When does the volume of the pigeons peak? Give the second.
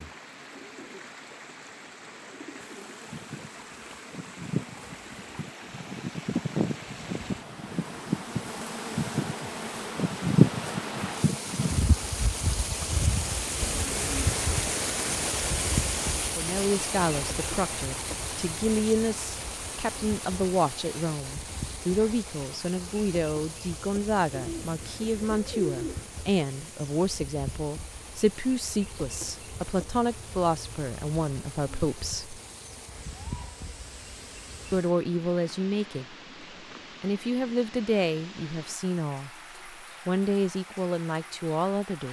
26 s.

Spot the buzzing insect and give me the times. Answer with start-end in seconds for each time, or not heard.
2.6-34.8.